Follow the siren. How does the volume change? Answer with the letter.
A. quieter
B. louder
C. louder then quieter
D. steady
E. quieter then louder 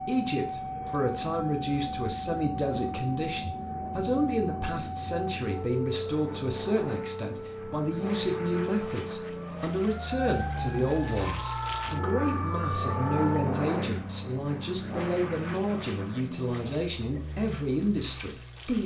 D.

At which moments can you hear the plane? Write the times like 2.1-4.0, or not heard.
0.0-18.8.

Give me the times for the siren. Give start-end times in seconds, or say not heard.
0.0-13.6.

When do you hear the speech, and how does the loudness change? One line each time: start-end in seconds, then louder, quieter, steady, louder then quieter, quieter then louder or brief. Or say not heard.
0.1-18.8 steady.